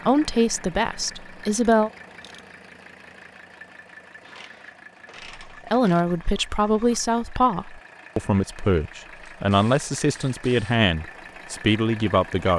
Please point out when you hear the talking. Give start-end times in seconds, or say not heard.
0.0-1.9, 5.5-12.5.